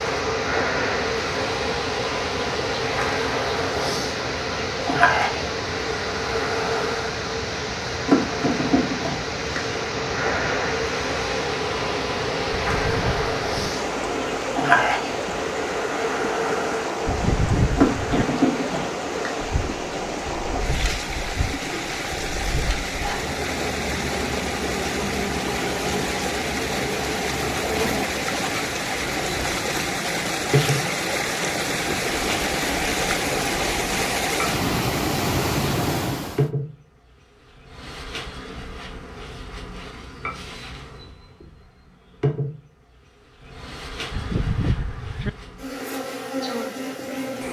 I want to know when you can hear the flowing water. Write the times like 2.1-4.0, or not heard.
0.0-36.5.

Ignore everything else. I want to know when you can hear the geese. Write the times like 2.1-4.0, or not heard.
12.6-13.7, 17.1-18.2, 44.1-45.3.